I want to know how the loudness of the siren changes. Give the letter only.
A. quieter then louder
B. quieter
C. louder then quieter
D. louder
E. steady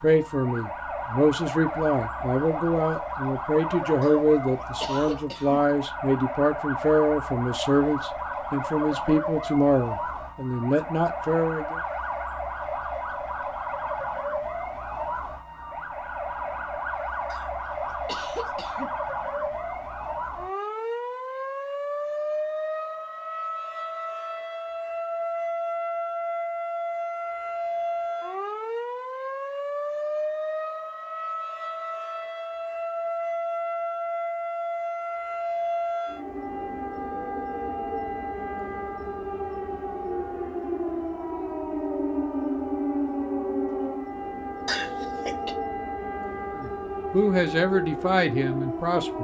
E.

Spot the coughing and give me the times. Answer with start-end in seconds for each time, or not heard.
4.0-5.6, 17.3-18.9, 44.6-45.5.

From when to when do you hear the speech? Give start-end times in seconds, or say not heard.
0.0-11.8, 46.5-49.2.